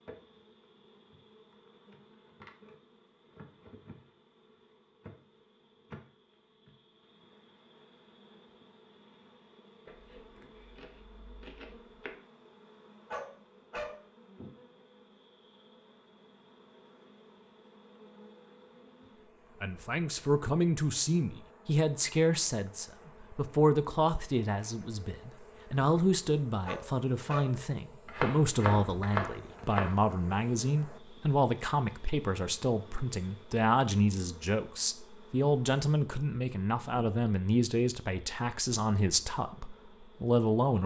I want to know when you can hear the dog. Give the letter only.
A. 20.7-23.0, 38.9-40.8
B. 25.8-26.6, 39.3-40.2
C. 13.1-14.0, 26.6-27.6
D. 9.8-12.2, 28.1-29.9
C.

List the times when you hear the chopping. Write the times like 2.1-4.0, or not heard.
9.8-12.2, 28.1-29.9.